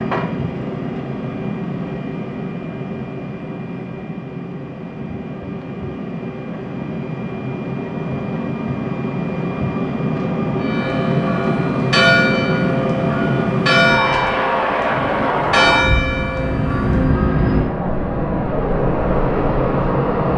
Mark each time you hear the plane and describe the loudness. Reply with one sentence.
You can hear the plane from 0.0 to 20.3 s, getting louder.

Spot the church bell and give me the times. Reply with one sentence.
The church bell can be heard from 10.6 to 17.1 s.